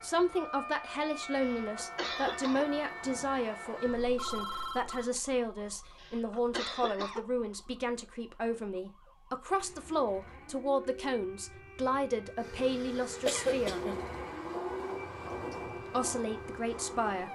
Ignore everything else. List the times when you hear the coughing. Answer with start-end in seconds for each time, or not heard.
1.4-2.6, 6.0-7.2, 13.2-14.0.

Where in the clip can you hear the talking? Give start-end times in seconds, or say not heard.
0.0-13.9, 15.5-17.3.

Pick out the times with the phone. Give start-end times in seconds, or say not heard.
4.0-5.1.